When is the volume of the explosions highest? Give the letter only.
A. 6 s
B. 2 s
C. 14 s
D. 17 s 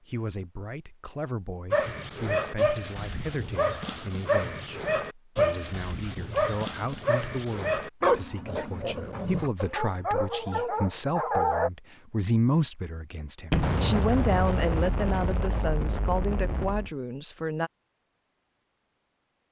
C.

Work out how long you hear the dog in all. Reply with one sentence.
You can hear the dog for 10 seconds altogether.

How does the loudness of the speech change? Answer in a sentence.
The loudness of the speech goes up.